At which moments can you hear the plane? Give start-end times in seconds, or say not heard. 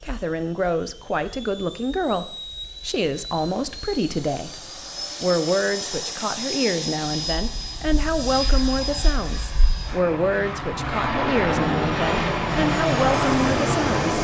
0.0-14.1.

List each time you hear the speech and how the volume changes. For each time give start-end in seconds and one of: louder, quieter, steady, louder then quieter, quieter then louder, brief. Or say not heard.
0.0-4.5 steady
5.2-14.0 steady.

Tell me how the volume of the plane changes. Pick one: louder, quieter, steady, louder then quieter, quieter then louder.
louder.